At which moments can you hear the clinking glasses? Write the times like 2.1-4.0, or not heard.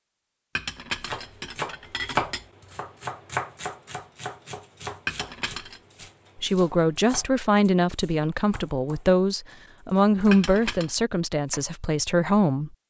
0.6-2.5, 5.0-5.8, 10.3-10.9.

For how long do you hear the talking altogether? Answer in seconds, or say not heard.
6 s.